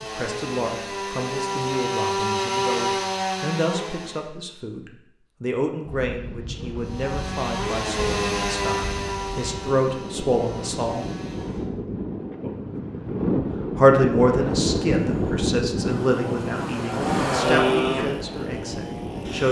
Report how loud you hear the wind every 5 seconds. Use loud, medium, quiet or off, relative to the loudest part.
off, medium, loud, loud.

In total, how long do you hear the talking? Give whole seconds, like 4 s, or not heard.
17 s.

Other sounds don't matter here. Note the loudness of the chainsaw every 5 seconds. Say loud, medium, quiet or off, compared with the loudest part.
loud, loud, quiet, loud.